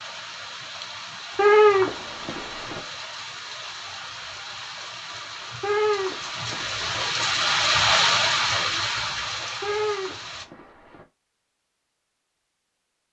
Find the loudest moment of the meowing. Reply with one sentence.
The loudest moment of the meowing is at 2 seconds.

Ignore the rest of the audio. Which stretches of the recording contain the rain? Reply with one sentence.
You can hear the rain from 0.0 to 10.4 s.